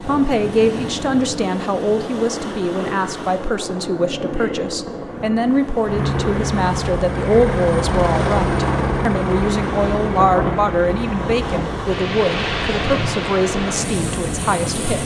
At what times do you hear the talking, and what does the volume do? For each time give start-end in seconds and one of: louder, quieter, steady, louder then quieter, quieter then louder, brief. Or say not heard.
0.0-15.0 steady.